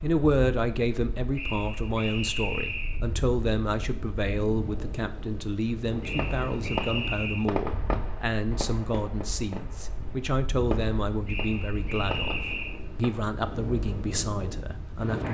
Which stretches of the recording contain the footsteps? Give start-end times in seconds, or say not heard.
not heard.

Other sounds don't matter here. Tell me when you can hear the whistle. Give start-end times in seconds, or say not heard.
1.4-3.0, 6.0-7.5, 11.2-12.8.